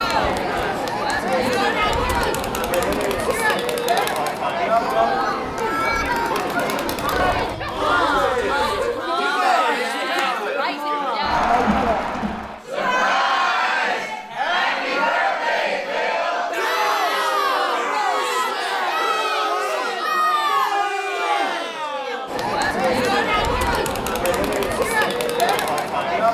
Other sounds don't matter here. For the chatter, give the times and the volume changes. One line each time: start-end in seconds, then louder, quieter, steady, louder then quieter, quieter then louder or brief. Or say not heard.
0.0-26.3 steady.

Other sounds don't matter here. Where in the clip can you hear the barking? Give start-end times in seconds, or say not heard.
7.0-9.1.